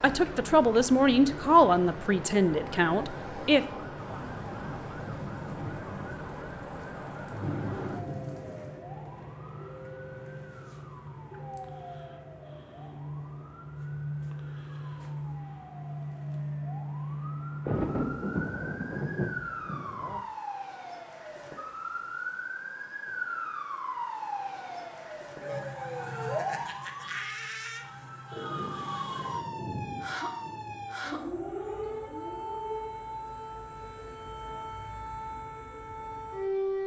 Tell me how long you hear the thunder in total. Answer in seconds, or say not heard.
10 s.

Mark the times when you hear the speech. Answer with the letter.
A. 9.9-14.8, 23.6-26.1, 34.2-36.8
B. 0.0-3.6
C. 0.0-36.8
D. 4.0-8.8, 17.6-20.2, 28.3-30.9
B.